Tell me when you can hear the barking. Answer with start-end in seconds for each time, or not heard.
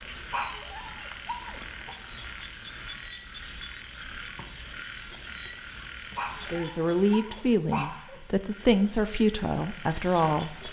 0.3-1.9, 6.2-8.2.